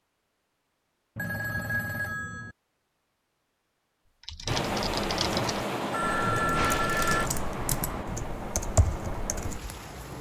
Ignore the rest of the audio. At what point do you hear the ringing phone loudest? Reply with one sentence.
The volume of the ringing phone peaks at 7 seconds.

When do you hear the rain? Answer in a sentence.
The rain can be heard from 4.5 to 10.1 s.